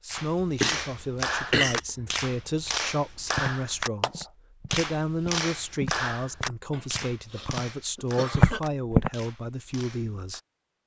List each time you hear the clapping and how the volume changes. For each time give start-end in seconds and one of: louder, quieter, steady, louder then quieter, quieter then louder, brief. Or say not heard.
0.1-10.4 quieter.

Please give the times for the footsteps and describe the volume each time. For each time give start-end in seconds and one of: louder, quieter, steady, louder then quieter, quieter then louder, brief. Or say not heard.
3.3-7.7 louder then quieter
8.3-9.1 brief.